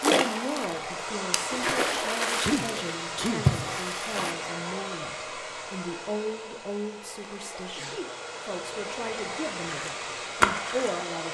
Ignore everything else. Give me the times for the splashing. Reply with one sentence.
The splashing can be heard from 0.0 to 4.3 s and from 9.7 to 10.9 s.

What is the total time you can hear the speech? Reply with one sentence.
The speech can be heard for 11 seconds in total.